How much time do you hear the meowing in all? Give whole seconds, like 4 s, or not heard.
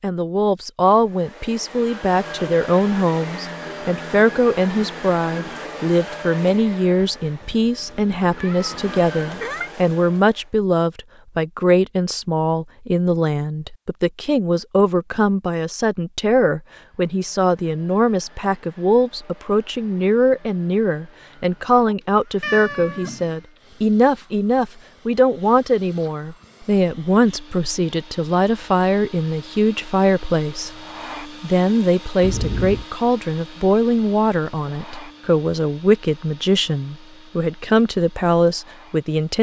4 s.